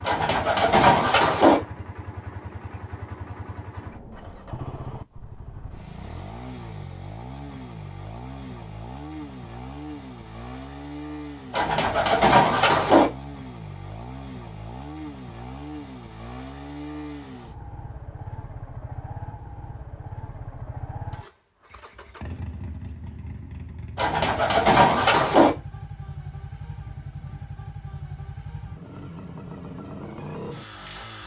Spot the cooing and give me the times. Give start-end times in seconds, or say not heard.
0.1-1.6, 11.5-13.1, 23.9-25.5.